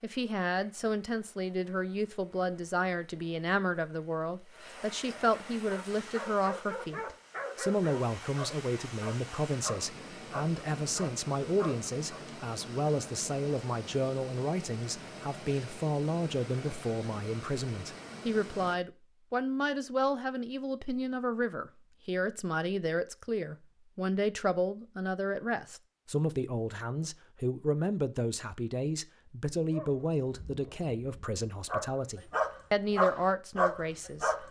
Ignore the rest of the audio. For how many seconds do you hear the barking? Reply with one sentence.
The barking can be heard for 11 seconds in total.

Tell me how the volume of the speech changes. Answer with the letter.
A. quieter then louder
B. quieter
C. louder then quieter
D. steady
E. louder
D.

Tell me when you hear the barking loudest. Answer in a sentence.
The loudest moment of the barking is at 33 seconds.